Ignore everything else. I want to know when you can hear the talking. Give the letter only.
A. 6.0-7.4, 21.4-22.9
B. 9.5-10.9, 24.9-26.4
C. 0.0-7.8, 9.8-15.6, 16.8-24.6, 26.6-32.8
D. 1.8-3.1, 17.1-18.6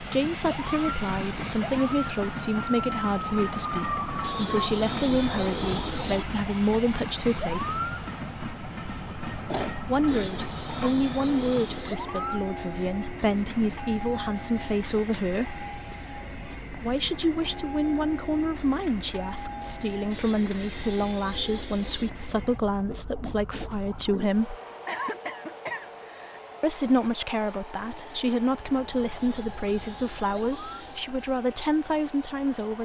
C.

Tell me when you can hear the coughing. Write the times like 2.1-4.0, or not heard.
9.5-10.9, 24.9-26.4.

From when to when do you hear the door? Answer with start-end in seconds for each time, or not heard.
not heard.